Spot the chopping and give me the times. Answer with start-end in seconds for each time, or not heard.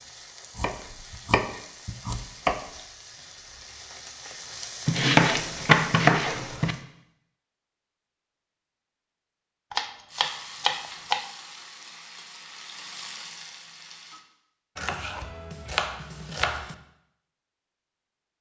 0.6-2.6, 4.8-6.8, 9.7-11.2, 14.8-16.8.